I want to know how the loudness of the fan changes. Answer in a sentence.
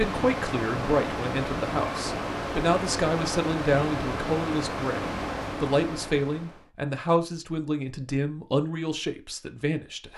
The volume of the fan stays about the same.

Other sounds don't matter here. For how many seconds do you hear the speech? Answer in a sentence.
You can hear the speech for 10 seconds altogether.